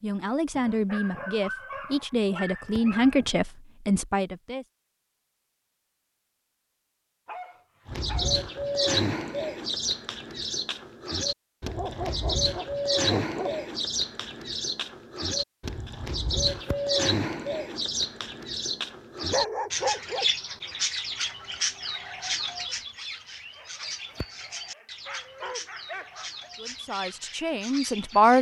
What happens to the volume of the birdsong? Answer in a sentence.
The loudness of the birdsong goes down.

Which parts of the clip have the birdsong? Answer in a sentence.
You can hear the birdsong from 7.8 to 28.3 s.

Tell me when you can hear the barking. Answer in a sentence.
The barking can be heard from 0.5 to 3.4 s, from 7.2 to 8.4 s, from 11.7 to 13.7 s, from 19.3 to 20.2 s and from 23.6 to 26.5 s.